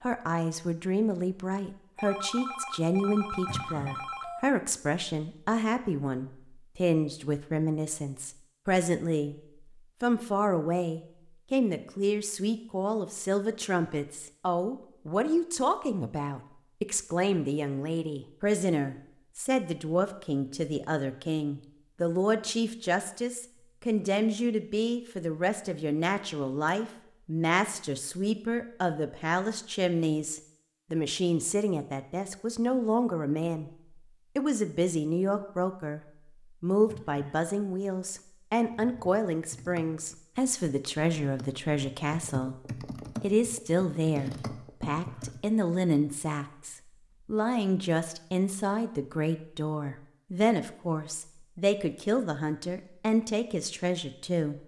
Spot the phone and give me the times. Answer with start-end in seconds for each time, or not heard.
1.9-4.4.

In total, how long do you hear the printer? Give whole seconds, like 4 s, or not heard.
not heard.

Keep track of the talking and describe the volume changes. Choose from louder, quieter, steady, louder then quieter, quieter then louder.
steady.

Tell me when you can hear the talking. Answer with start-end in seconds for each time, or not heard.
0.0-33.7, 34.4-42.5, 43.2-54.5.